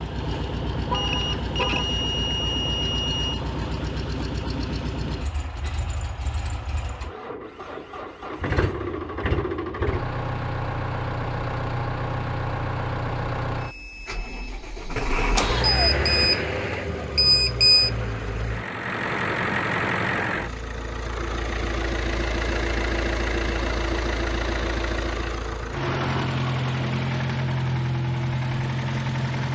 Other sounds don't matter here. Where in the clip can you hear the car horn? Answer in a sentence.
You can hear the car horn from 0.8 to 1.9 s.